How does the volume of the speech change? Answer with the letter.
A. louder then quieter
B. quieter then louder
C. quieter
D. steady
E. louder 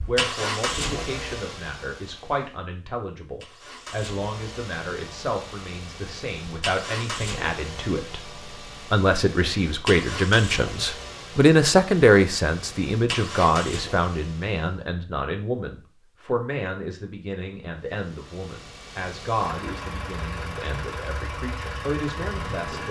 A.